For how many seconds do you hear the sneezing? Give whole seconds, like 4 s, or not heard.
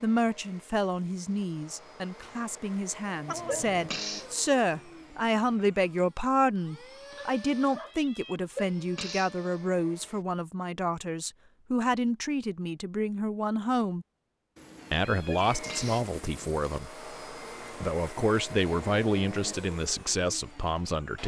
2 s.